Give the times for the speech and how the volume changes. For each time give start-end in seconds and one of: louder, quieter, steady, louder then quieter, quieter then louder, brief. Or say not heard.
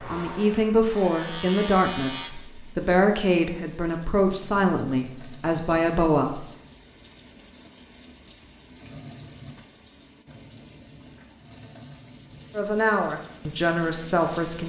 0.0-6.5 steady
12.6-14.6 brief.